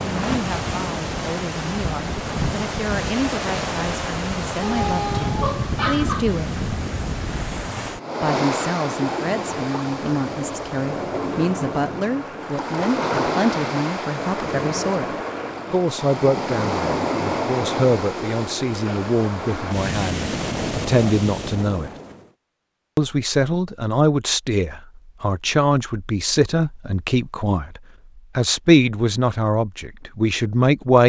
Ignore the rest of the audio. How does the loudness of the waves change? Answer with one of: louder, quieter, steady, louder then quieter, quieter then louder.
steady.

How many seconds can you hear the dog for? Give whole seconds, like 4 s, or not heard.
2 s.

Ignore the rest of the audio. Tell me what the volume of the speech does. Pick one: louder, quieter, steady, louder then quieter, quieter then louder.
louder.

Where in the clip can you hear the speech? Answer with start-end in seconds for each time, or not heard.
0.0-6.7, 8.2-15.1, 15.7-21.9, 22.9-31.0.